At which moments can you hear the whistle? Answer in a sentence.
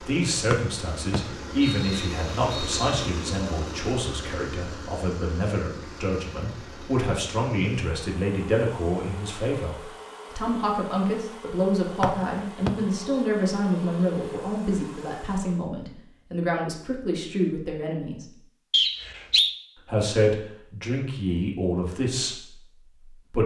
The whistle can be heard from 0.5 to 2.8 s, from 12.0 to 12.7 s and from 18.7 to 19.5 s.